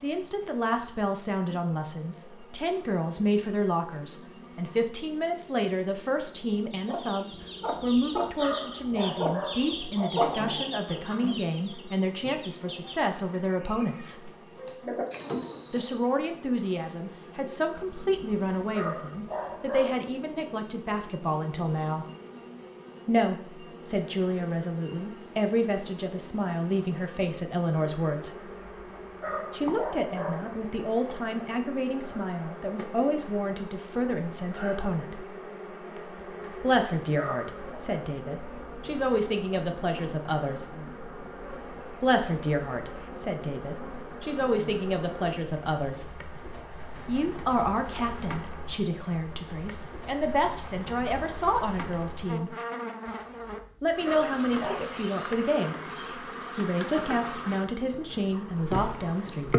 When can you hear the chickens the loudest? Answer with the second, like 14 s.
10 s.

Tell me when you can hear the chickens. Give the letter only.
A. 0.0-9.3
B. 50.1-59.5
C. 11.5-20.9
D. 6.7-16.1
D.